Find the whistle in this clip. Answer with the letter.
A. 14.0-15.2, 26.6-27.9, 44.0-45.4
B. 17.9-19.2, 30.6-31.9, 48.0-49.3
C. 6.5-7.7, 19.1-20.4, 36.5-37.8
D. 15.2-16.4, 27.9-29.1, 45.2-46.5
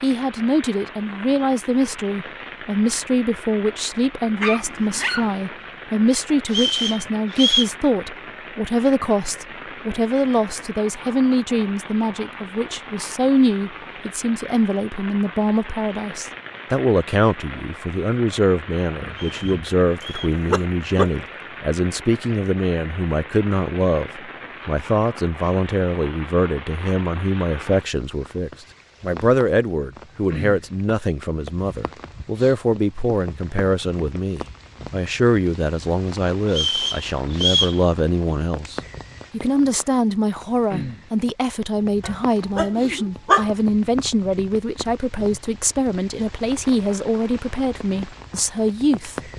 C.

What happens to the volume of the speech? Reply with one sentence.
The volume of the speech stays about the same.